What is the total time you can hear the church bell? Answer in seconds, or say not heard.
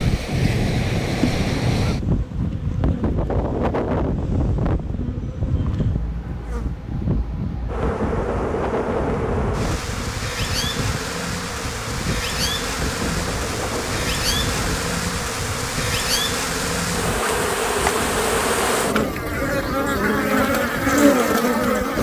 not heard.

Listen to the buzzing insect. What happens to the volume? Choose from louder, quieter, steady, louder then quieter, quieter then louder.
louder.